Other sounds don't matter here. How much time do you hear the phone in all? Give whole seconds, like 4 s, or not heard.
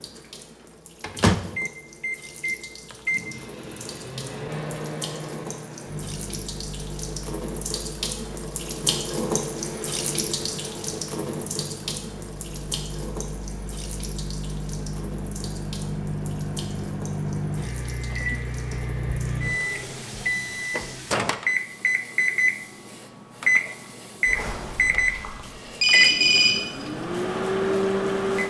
2 s.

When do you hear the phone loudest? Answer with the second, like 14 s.
26 s.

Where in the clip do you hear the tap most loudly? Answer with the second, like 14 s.
9 s.